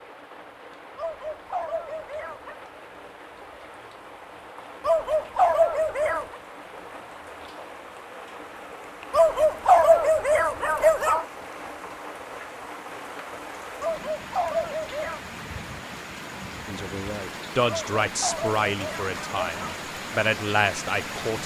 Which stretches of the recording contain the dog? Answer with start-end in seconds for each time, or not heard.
0.9-2.5, 4.8-6.3, 9.1-11.2, 13.8-15.2, 17.6-19.8.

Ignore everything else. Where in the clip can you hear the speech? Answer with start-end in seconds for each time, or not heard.
16.6-21.4.